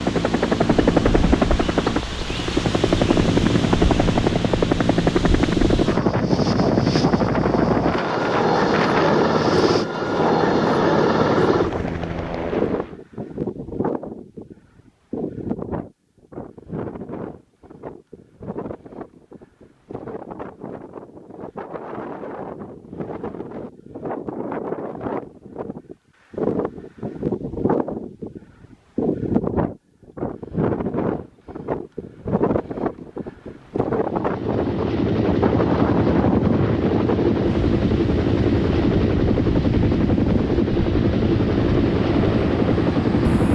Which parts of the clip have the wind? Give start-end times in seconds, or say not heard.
0.0-43.5.